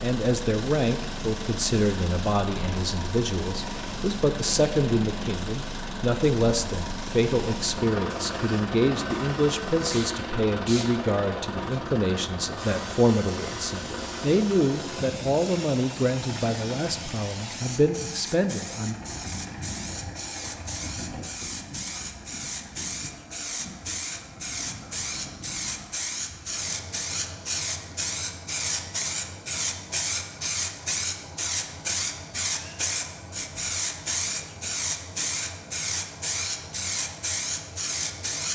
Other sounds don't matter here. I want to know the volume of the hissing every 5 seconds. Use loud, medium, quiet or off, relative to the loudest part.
medium, medium, medium, medium, medium, loud, loud, loud.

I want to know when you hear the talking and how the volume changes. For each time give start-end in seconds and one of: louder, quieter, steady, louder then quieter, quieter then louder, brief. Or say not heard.
0.0-18.9 steady.